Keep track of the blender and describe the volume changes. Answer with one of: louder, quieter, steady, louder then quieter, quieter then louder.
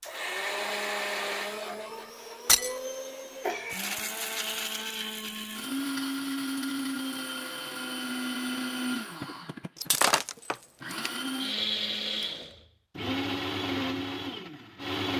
steady.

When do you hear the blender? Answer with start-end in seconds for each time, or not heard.
0.0-15.1.